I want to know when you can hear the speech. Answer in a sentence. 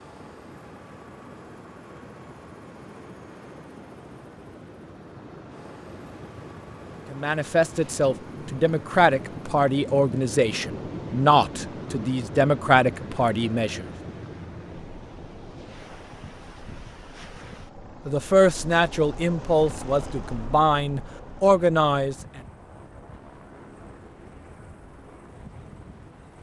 The speech can be heard from 7.1 to 13.8 s and from 18.1 to 22.1 s.